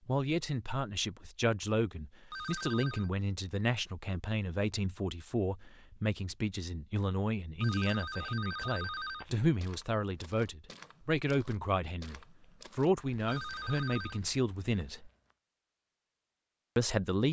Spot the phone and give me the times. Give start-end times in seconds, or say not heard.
2.3-3.1, 7.6-9.2, 13.2-14.2.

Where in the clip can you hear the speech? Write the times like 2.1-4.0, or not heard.
0.1-15.1, 16.8-17.2.